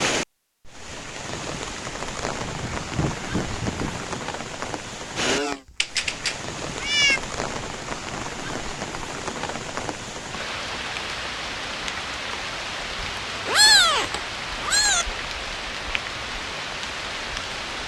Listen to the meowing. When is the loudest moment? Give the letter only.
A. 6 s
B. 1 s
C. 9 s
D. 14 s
D.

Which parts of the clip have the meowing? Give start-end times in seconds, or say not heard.
5.2-7.2, 13.0-15.1.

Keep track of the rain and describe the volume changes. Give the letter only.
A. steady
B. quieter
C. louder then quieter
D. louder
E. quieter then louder
A.